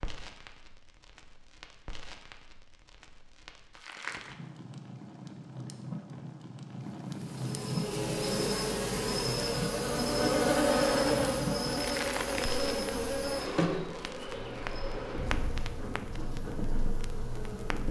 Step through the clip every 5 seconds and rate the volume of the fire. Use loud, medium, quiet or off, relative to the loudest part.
medium, loud, loud, medium.